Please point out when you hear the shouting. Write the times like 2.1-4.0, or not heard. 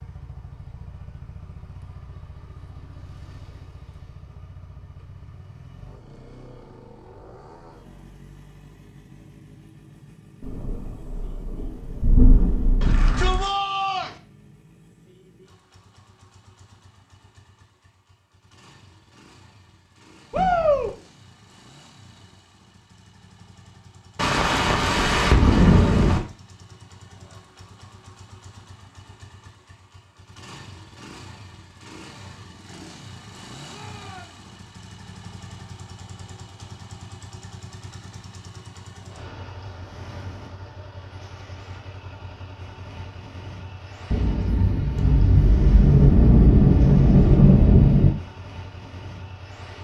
12.8-14.1, 20.3-20.9, 33.6-34.5.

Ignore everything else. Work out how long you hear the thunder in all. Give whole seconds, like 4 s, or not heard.
9 s.